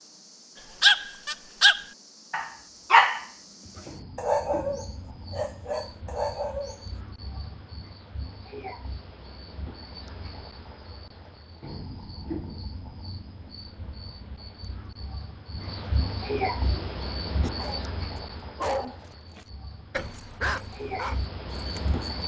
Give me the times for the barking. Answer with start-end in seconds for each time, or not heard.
0.8-6.8, 16.6-17.9, 18.6-22.1.